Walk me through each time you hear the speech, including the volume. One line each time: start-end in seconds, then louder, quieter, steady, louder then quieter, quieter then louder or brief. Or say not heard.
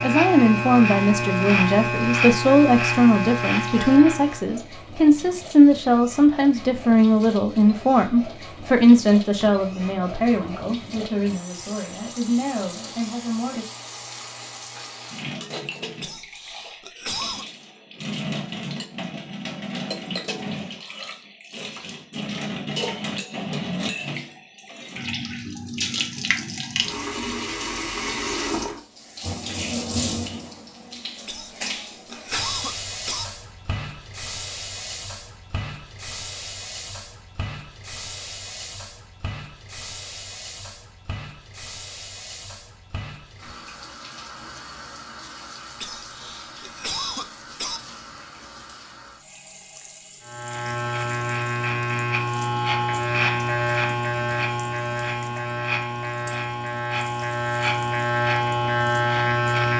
0.0-13.7 quieter.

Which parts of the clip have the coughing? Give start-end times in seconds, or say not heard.
16.0-17.4, 31.2-33.2, 45.8-47.8.